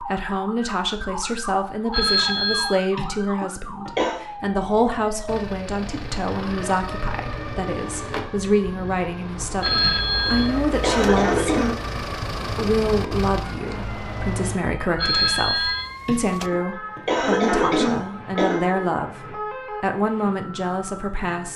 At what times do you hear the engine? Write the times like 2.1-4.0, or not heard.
5.2-14.7.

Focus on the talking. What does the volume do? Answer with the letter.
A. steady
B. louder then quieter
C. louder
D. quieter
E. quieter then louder
A.